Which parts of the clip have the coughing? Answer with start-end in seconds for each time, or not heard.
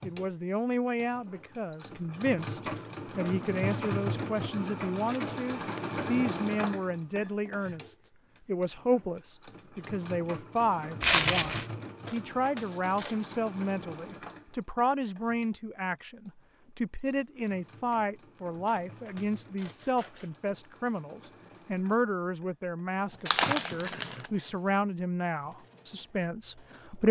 not heard.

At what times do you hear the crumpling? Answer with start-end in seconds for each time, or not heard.
5.0-5.8, 11.0-11.7, 23.2-24.3.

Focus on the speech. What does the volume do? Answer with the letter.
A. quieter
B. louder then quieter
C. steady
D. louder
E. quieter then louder
C.